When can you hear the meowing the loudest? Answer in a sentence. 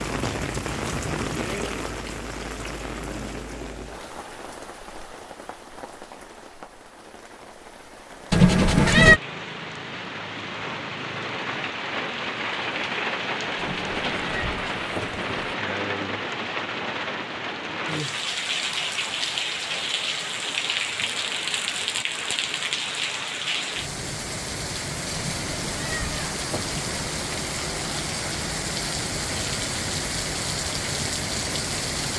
The volume of the meowing peaks at 9 seconds.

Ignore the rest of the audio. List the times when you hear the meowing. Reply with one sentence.
You can hear the meowing from 8.3 to 9.2 s, from 13.6 to 15.6 s and from 25.1 to 27.1 s.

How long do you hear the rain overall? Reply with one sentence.
The rain can be heard for 32 seconds in total.